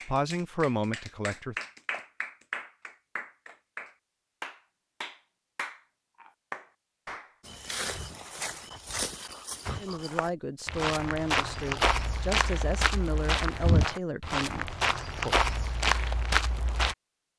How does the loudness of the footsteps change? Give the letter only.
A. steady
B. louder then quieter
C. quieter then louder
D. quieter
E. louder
E.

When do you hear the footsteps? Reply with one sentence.
The footsteps can be heard from 7.5 to 16.9 s.